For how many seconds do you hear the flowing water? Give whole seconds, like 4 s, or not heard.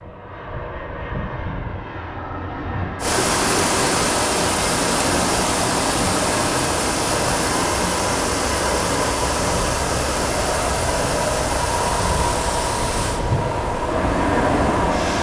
12 s.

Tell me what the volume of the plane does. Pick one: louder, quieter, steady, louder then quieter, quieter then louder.
louder.